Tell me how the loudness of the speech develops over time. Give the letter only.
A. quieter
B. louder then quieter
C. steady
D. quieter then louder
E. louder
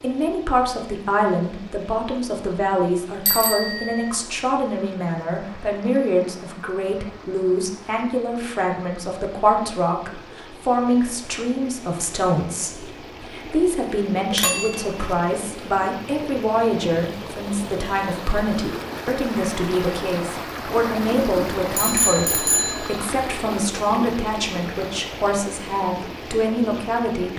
C.